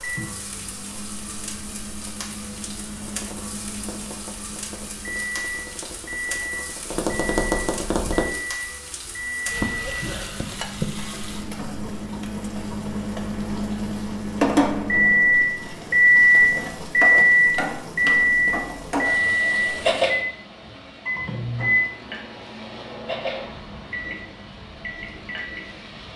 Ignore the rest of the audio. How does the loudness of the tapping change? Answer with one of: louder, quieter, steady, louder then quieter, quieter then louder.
louder.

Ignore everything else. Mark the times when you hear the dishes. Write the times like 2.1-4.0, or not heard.
not heard.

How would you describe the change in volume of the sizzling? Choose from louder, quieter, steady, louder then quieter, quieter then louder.
louder then quieter.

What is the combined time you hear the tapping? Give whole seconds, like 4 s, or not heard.
5 s.